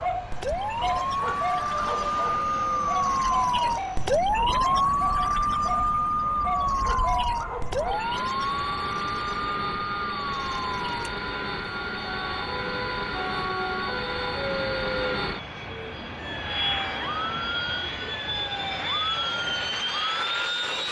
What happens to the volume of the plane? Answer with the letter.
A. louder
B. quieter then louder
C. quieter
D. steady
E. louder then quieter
A.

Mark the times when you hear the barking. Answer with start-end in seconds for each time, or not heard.
0.0-8.2.